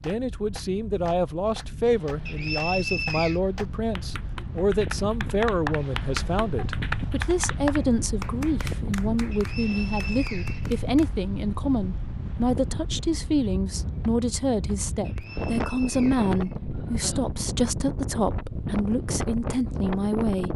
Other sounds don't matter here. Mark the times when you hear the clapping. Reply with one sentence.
The clapping can be heard from 0.0 to 11.2 s.